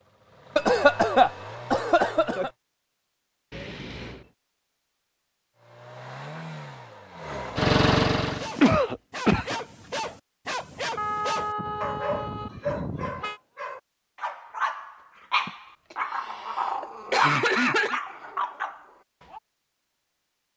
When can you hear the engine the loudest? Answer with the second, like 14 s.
8 s.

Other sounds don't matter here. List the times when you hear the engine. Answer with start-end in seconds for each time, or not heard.
0.0-2.5, 5.5-8.5.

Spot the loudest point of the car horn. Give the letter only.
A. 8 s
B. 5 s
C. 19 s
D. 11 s
D.